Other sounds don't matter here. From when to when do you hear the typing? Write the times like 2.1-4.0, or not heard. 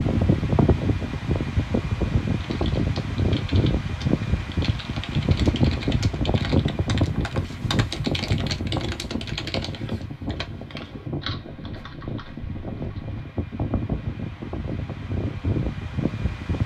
2.4-13.2.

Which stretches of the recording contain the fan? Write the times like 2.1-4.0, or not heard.
0.0-16.6.